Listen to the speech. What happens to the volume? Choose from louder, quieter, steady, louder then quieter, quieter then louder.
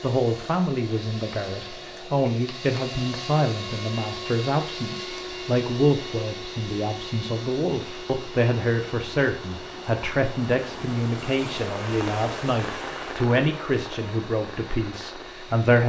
steady.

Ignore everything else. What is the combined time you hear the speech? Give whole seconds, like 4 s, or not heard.
16 s.